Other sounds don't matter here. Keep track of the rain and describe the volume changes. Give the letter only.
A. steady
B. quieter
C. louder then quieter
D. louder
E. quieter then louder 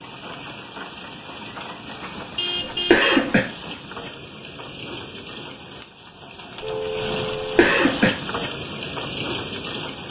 D.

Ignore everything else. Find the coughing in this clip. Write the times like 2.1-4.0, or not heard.
2.1-3.4, 6.8-8.1.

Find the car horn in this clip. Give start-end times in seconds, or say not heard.
2.4-3.1, 6.6-7.7.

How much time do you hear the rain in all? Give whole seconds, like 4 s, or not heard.
10 s.